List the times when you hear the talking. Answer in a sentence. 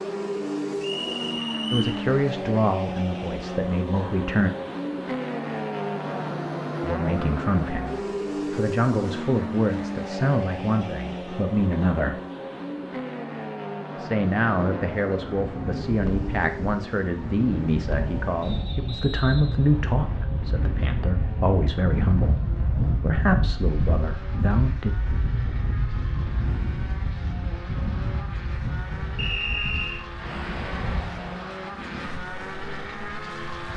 The talking can be heard from 1.7 to 4.5 s, from 6.8 to 12.2 s and from 13.9 to 24.9 s.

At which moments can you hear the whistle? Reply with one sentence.
You can hear the whistle from 0.8 to 2.0 s, from 18.4 to 20.2 s and from 29.1 to 30.0 s.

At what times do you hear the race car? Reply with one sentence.
The race car can be heard from 0.0 to 33.7 s.